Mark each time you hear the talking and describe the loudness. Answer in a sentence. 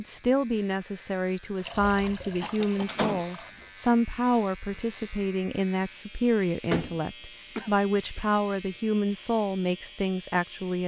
The talking can be heard from 0.0 to 10.8 s, at a steady volume.